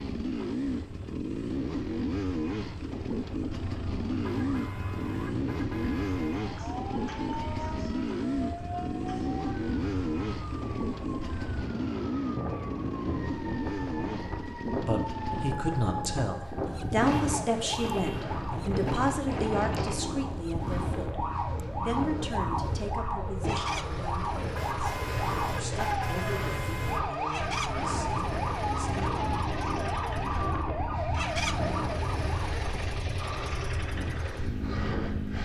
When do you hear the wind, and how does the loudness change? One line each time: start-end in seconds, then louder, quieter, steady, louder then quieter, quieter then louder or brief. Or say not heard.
0.0-35.4 louder.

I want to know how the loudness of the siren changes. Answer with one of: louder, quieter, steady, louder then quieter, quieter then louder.
louder.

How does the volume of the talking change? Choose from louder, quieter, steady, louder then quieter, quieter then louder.
quieter.